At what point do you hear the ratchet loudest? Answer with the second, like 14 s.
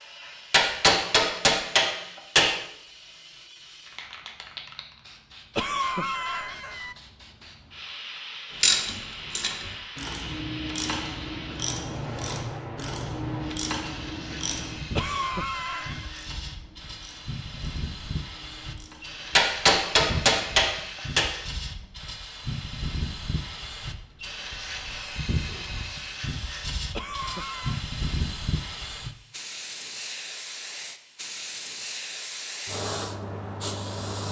9 s.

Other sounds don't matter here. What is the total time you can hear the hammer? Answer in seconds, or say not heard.
4 s.